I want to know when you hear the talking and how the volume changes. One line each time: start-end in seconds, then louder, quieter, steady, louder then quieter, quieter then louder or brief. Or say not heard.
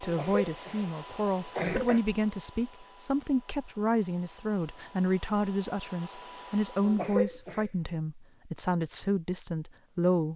0.0-10.3 steady.